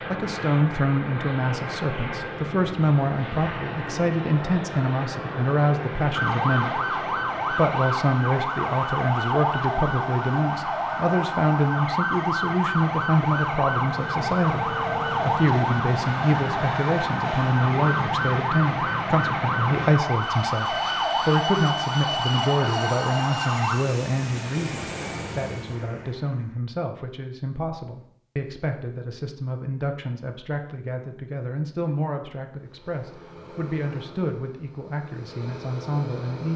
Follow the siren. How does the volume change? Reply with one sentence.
The volume of the siren stays about the same.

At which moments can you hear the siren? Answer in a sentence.
You can hear the siren from 6.2 to 23.8 s.